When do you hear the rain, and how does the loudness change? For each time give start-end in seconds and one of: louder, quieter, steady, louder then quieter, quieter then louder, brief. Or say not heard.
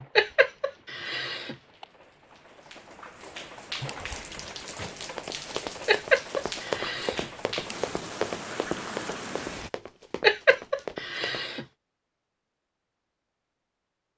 0.0-9.7 louder.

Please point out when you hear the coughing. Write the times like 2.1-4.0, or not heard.
0.1-1.9, 5.8-7.3, 10.2-11.7.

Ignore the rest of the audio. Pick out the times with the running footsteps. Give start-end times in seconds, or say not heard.
5.2-11.4.